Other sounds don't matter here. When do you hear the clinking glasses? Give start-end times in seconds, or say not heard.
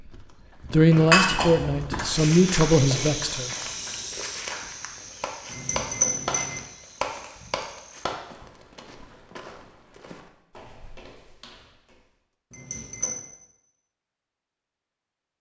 0.9-1.7, 5.5-6.7, 12.5-13.2.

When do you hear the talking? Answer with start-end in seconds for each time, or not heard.
0.7-3.5.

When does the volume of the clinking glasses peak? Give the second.
1 s.